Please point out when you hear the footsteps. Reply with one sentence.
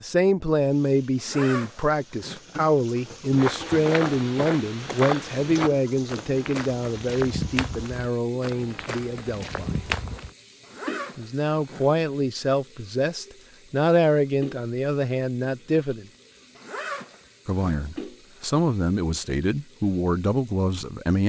You can hear the footsteps from 3.4 to 10.3 s.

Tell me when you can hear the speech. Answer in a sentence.
The speech can be heard from 0.0 to 9.7 s, from 11.2 to 16.1 s and from 17.4 to 21.2 s.